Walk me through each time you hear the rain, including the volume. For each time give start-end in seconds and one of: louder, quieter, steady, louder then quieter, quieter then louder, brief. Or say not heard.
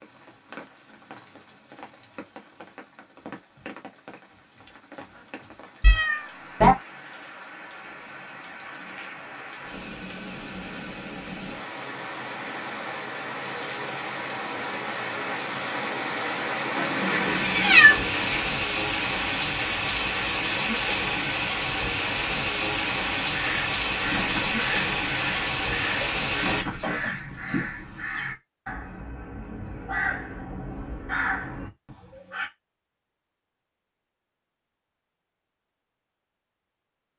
0.0-26.6 louder.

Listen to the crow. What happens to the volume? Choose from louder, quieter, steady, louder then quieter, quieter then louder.
steady.